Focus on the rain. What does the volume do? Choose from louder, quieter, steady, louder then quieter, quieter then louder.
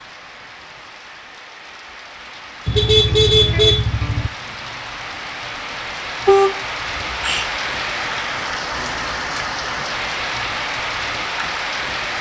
louder.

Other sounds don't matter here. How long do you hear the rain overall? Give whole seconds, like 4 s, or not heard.
12 s.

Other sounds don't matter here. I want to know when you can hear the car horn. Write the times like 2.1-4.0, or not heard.
2.6-4.3, 6.2-7.5.